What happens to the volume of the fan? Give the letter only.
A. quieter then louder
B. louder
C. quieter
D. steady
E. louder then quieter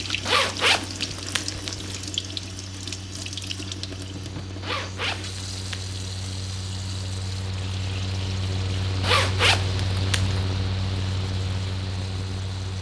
B.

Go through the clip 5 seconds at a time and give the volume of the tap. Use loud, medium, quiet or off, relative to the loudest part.
loud, medium, medium.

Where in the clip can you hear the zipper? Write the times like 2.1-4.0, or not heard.
0.2-2.0, 4.6-5.9, 9.0-10.4.